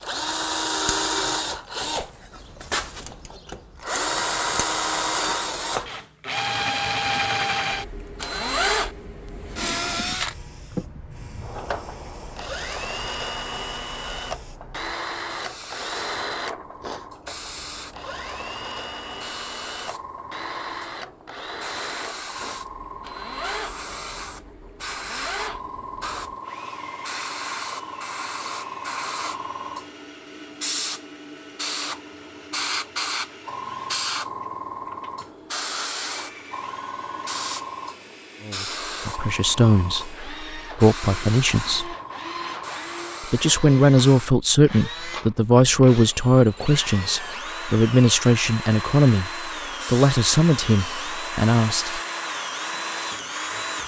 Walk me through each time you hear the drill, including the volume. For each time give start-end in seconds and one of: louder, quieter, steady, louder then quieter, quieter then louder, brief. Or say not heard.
0.0-53.8 quieter then louder.